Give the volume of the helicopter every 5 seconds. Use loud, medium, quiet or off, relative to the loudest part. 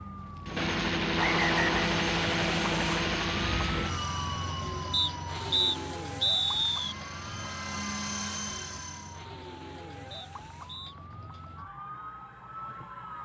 loud, medium, off.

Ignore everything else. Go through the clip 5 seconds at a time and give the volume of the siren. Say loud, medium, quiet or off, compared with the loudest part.
loud, loud, medium.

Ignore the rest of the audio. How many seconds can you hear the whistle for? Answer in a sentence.
You can hear the whistle for 4 seconds altogether.